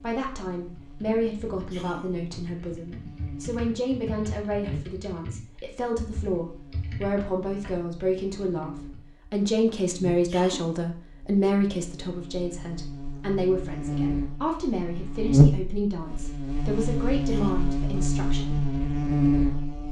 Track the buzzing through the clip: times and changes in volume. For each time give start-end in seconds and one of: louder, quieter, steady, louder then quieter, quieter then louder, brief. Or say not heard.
0.0-19.8 louder.